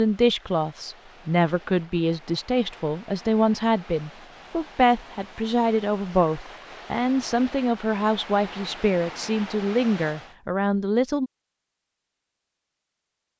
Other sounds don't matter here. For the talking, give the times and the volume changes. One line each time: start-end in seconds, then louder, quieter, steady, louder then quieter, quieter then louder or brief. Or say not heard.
0.0-11.3 steady.